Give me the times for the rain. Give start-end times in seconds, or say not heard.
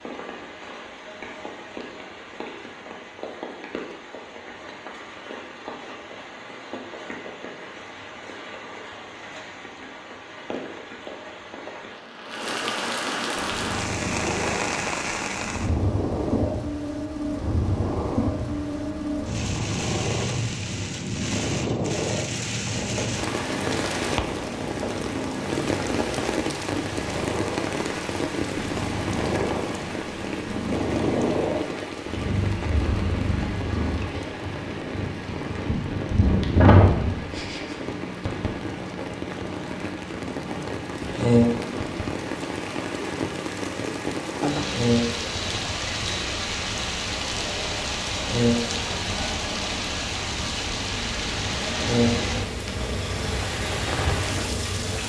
0.0-55.0.